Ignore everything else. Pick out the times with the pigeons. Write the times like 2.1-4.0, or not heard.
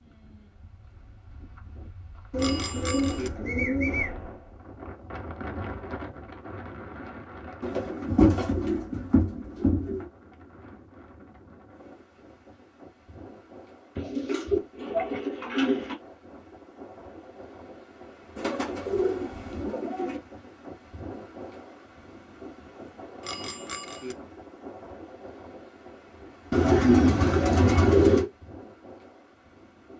2.3-4.1, 7.6-10.1, 13.9-15.9, 18.4-20.2, 26.5-28.2.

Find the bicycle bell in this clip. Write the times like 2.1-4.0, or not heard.
2.4-3.3, 23.2-24.1.